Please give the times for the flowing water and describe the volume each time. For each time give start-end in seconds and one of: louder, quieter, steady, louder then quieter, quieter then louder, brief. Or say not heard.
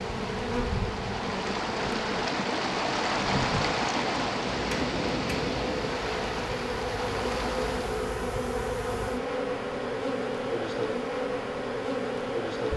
0.0-8.0 louder then quieter.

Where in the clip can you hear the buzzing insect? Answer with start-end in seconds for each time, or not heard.
0.0-12.7.